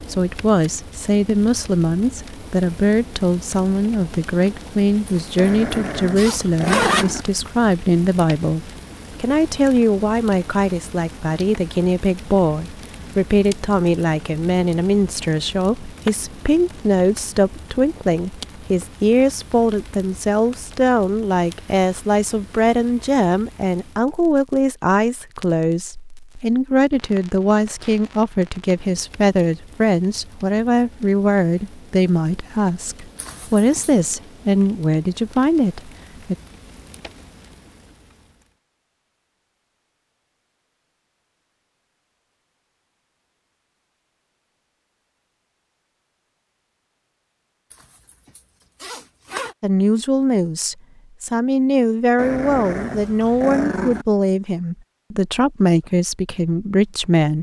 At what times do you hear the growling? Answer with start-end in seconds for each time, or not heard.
5.3-7.2, 52.1-54.0.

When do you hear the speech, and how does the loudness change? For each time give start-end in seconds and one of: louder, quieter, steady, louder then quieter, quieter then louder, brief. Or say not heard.
0.1-36.4 steady
49.6-57.3 steady.